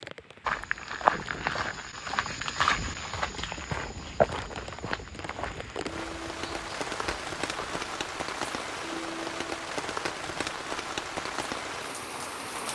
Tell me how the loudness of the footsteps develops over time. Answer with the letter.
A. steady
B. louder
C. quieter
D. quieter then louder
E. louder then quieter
C.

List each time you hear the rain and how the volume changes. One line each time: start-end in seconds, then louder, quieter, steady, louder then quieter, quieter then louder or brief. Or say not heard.
0.0-12.6 louder.